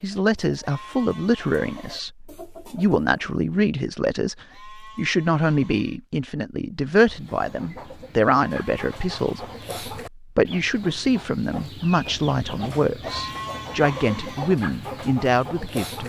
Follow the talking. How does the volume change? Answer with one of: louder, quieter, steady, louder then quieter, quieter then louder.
steady.